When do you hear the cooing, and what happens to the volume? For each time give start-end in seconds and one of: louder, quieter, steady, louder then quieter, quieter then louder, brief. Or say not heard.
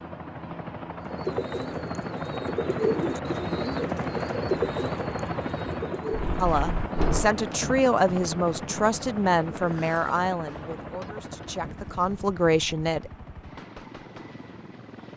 1.0-12.2 quieter.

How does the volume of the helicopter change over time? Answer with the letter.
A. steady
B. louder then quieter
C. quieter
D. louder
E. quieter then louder
C.